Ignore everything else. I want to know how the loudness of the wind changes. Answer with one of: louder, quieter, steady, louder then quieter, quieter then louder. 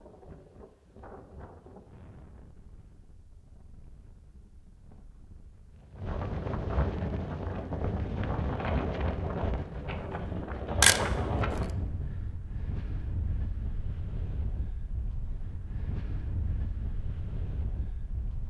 louder then quieter.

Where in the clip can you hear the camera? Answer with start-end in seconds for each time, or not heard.
10.8-11.7.